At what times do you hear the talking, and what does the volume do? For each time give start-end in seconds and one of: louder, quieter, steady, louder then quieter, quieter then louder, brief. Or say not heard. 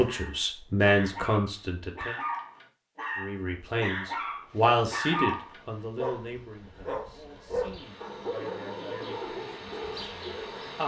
0.0-2.1 brief
3.1-10.8 quieter.